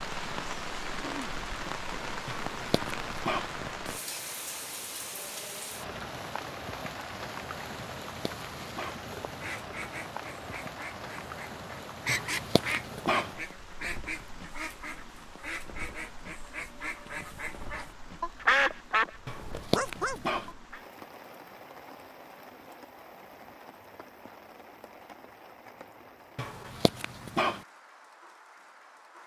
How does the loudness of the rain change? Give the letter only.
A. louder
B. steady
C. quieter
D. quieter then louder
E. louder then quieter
C.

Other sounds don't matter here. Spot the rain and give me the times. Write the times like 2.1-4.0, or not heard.
0.0-29.2.